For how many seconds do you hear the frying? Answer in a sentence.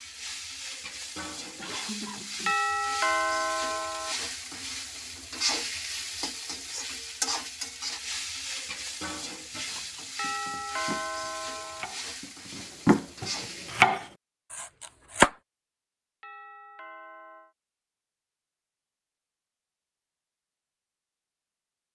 You can hear the frying for 14 seconds altogether.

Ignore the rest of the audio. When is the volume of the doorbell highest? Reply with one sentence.
The volume of the doorbell peaks at 3 seconds.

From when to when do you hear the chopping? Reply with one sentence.
The chopping can be heard from 9.6 to 15.3 s.